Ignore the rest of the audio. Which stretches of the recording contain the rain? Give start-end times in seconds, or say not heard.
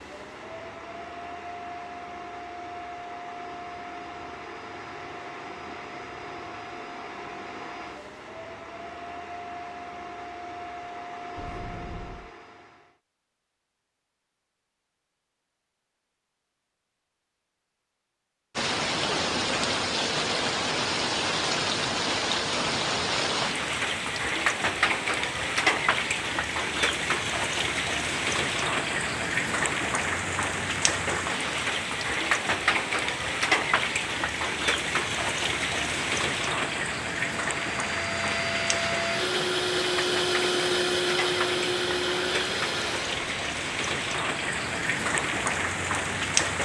18.6-46.6.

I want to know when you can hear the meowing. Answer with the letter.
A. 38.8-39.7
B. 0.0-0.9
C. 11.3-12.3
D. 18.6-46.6
C.